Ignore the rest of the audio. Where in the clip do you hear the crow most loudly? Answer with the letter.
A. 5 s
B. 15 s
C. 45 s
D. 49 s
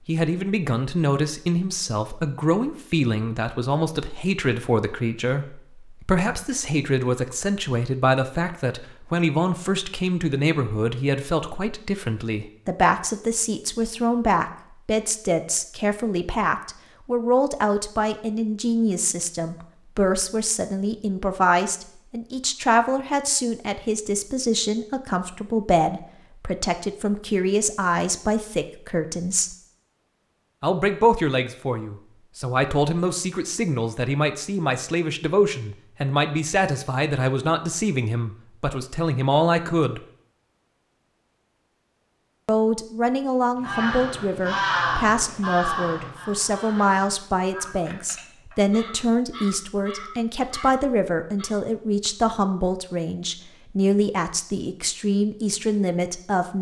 C.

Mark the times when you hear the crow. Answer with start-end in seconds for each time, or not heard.
43.6-51.5.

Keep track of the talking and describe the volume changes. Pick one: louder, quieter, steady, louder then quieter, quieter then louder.
steady.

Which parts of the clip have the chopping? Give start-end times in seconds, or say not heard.
not heard.